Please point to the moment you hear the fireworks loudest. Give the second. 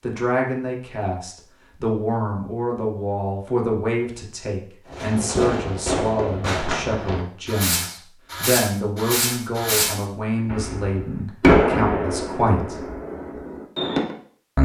12 s.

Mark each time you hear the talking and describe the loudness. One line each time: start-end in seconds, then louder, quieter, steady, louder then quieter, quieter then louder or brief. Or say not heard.
0.0-12.8 steady.